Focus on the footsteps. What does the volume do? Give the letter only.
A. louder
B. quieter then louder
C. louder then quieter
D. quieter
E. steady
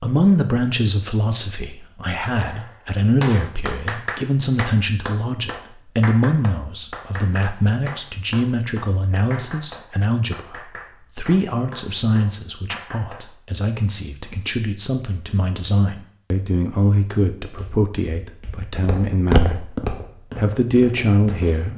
C.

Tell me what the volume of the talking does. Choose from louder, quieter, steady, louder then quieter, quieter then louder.
steady.